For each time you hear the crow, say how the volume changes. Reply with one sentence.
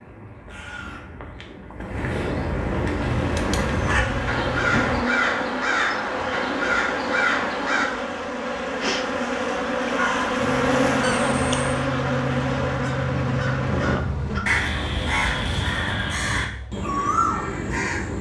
The crow can be heard from 0.0 to 7.8 s, getting louder; and from 9.9 to 18.1 s, getting louder.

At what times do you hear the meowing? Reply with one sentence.
The meowing can be heard from 3.0 to 5.0 s and from 11.0 to 11.8 s.